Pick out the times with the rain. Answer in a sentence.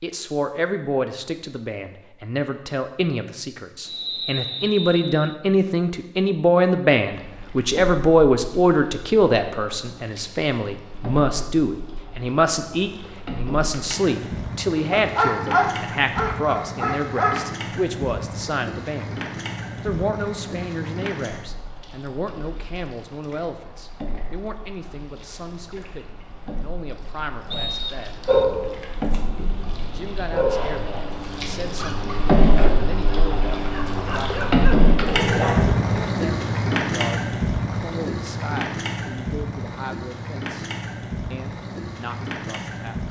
The rain can't be heard in this clip.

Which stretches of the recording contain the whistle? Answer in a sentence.
The whistle can be heard from 3.9 to 5.3 s and from 27.5 to 28.4 s.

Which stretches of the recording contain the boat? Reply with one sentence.
The boat can be heard from 7.1 to 43.0 s.